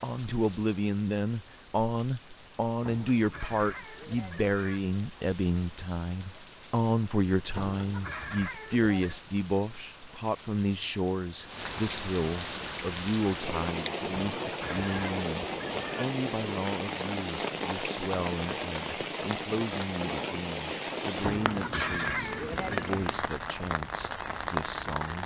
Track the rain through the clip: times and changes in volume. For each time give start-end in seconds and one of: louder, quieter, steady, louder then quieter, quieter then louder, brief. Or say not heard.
0.0-25.2 louder.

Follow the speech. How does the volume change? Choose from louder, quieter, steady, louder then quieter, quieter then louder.
quieter.